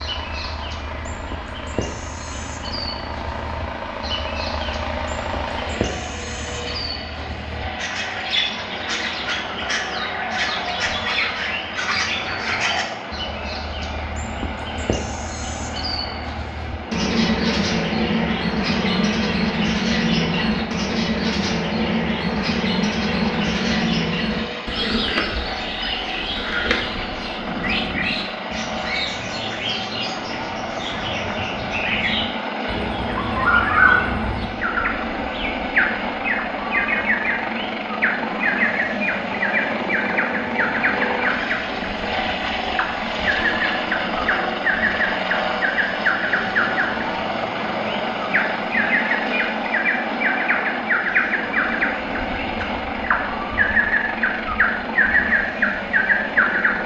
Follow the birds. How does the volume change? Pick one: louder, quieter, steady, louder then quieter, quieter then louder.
louder.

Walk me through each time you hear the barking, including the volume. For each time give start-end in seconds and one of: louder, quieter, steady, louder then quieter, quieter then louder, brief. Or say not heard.
not heard.